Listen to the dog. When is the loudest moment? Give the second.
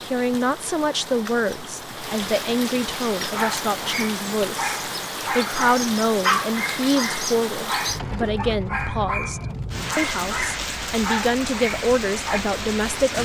6 s.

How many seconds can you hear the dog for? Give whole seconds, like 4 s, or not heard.
9 s.